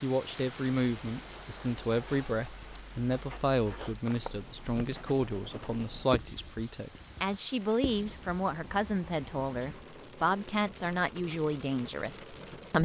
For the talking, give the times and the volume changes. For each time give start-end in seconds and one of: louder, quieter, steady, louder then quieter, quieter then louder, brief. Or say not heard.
0.0-12.8 steady.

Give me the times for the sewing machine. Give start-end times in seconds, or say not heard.
not heard.